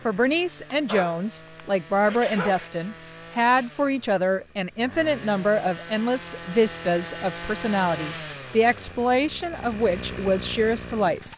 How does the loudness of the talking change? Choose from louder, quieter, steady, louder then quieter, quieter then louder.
steady.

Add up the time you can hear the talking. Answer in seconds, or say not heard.
11 s.